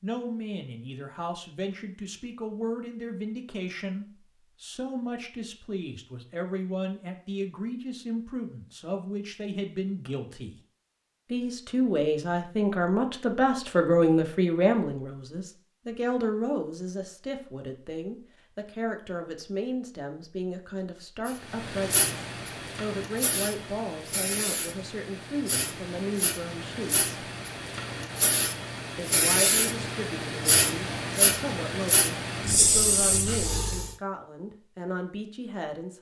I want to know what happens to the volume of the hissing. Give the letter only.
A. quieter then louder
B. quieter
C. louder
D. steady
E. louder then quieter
C.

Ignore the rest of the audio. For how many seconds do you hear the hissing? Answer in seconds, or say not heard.
13 s.